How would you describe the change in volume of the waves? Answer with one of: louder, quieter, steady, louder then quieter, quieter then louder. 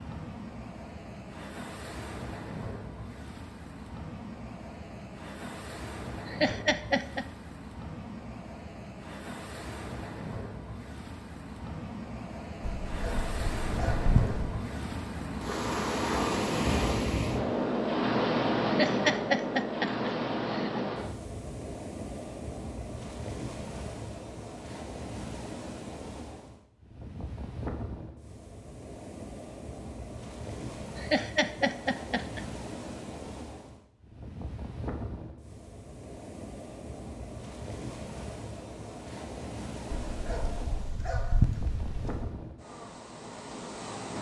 louder then quieter.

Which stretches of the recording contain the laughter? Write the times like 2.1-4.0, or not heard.
6.2-7.2, 18.6-20.9, 30.9-32.5.